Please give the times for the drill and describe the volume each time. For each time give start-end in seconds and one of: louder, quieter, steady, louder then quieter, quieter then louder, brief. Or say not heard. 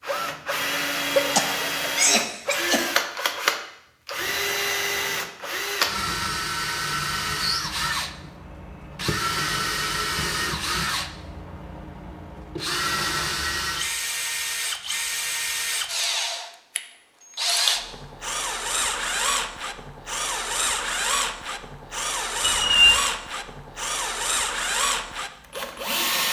0.0-26.2 steady.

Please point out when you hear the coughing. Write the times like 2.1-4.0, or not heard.
1.1-2.9.